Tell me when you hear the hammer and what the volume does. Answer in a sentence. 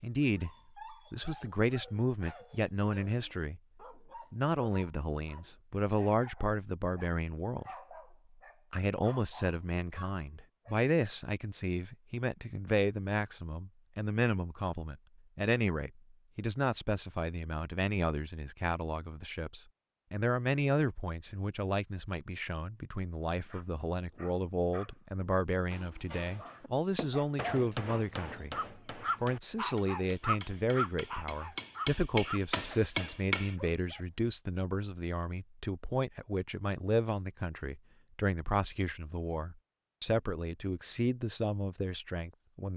The hammer can be heard from 25.7 to 33.5 s, getting quieter then louder.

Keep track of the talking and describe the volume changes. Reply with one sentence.
The loudness of the talking stays about the same.